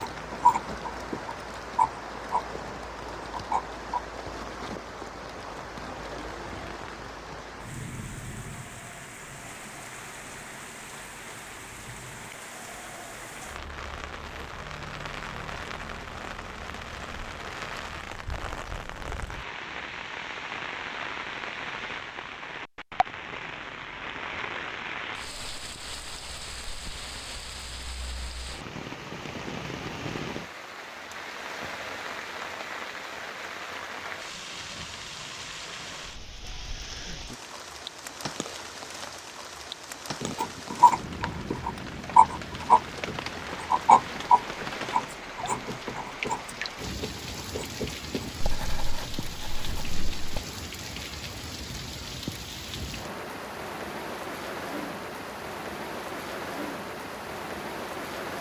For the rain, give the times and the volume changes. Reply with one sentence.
The rain can be heard from 0.0 to 58.3 s, at a steady volume.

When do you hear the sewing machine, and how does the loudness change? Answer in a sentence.
The sewing machine can't be heard in this clip.